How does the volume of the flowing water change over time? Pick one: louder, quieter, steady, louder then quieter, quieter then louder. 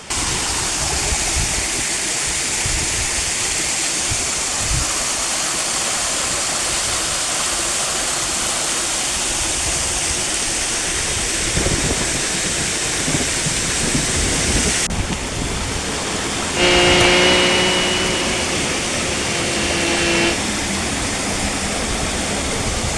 steady.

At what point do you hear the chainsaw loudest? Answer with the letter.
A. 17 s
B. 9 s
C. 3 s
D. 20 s
A.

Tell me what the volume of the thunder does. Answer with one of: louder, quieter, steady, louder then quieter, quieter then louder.
quieter then louder.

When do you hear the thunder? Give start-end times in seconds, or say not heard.
11.2-15.2.